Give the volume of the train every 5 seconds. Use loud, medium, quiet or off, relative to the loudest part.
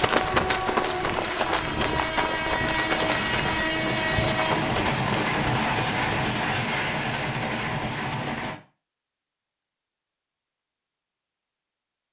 loud, loud, off.